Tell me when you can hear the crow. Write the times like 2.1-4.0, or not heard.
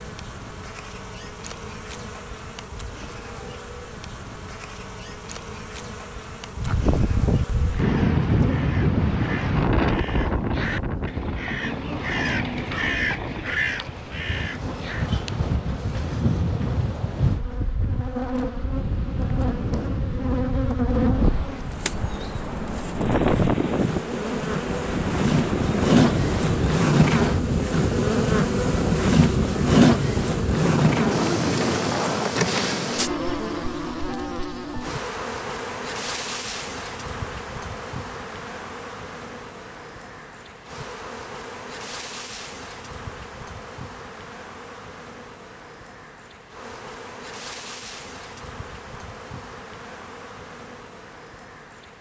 7.8-15.1.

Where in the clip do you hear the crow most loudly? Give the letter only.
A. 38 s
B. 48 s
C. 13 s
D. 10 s
C.